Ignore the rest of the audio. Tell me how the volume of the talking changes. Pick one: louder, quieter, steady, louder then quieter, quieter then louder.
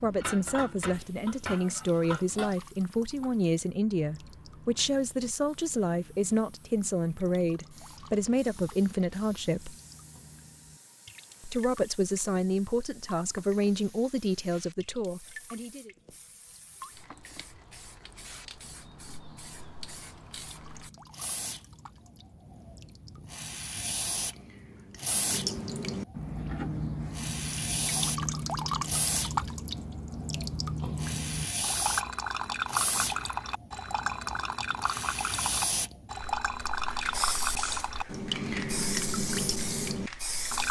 steady.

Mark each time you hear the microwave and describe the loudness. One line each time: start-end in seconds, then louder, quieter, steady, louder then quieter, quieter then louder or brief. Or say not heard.
not heard.